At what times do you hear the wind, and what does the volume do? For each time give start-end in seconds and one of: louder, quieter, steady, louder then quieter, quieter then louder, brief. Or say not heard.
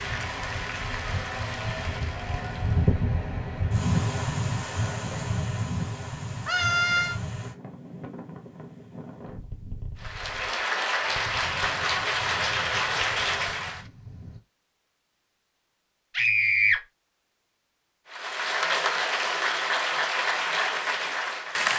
0.0-14.4 quieter.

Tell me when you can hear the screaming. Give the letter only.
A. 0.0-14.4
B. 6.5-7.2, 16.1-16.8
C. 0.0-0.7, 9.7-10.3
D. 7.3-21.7
B.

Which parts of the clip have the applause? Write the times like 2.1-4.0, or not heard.
0.0-3.0, 9.9-13.8, 18.1-21.7.